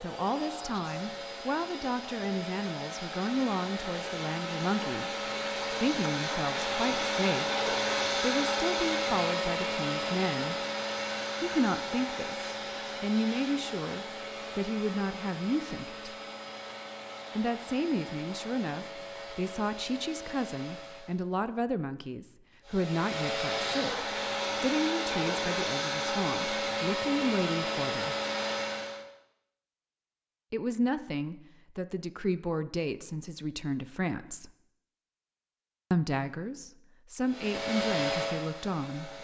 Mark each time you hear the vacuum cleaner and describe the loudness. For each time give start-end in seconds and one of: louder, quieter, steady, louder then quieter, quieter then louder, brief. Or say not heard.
0.0-21.2 louder then quieter
22.6-29.1 steady
37.2-39.1 brief.